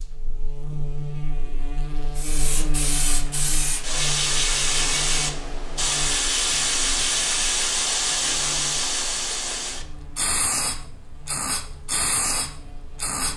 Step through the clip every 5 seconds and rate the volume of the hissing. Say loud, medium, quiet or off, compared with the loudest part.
loud, loud, medium.